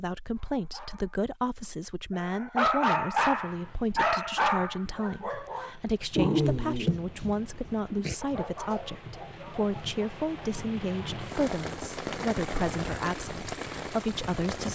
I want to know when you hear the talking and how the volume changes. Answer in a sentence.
The talking can be heard from 0.0 to 14.6 s, at a steady volume.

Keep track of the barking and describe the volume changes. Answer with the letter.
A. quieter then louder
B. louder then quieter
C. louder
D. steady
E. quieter
B.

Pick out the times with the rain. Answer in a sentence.
You can hear the rain from 3.2 to 14.6 s.